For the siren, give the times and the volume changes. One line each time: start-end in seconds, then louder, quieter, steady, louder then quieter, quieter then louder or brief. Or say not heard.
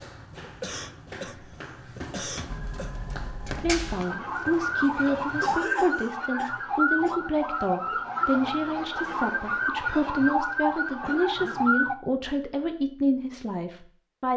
2.5-11.9 louder.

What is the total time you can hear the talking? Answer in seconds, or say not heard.
11 s.